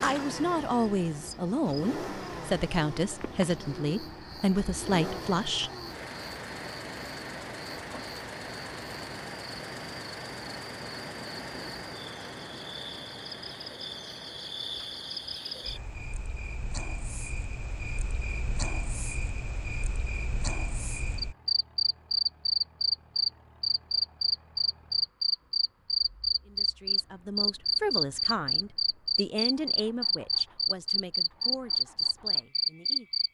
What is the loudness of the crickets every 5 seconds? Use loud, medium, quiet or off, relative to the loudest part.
quiet, quiet, quiet, quiet, loud, loud, loud.